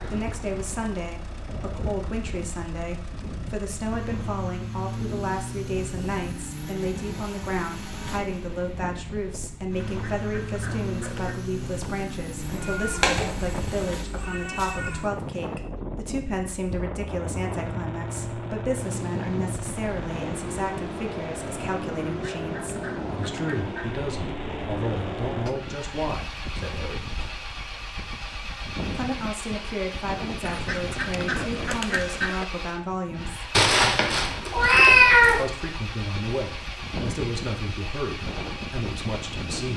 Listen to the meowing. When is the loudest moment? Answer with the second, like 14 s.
35 s.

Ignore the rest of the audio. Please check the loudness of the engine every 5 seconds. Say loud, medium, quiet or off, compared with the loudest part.
medium, loud, loud, loud, loud, loud, loud, loud.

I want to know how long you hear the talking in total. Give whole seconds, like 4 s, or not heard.
36 s.